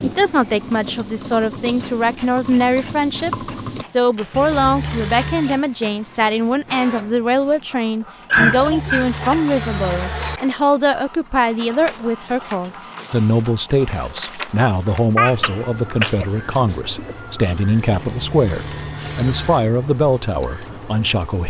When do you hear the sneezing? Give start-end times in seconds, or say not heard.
8.3-9.1, 15.2-17.1.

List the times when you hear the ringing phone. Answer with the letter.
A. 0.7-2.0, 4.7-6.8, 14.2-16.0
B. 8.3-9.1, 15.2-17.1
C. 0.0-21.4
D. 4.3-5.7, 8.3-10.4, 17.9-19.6
D.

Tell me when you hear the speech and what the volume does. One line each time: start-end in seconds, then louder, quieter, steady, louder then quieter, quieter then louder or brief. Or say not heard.
0.0-21.4 steady.